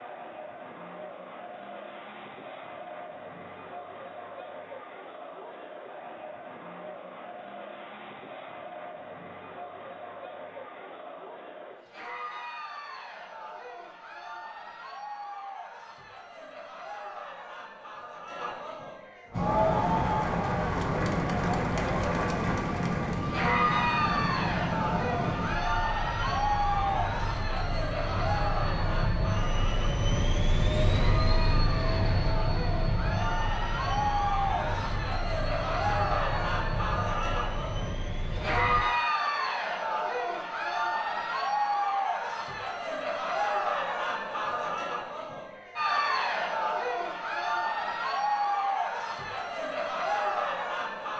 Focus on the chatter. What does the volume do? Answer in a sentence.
The volume of the chatter goes up.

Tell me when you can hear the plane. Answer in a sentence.
You can hear the plane from 19.3 to 38.9 s.